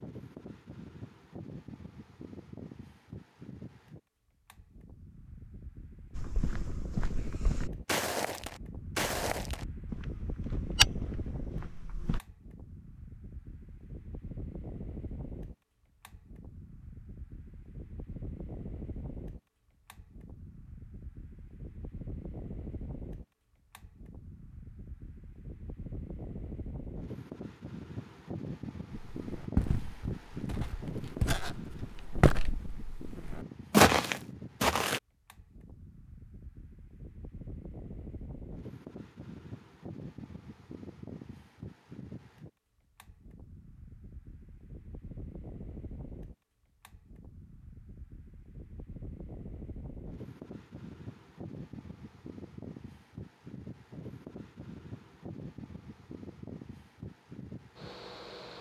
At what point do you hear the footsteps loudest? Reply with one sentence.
The loudest moment of the footsteps is at 34 seconds.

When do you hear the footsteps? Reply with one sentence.
You can hear the footsteps from 6.2 to 12.2 s and from 29.2 to 35.0 s.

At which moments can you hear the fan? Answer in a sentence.
The fan can be heard from 0.0 to 58.5 s.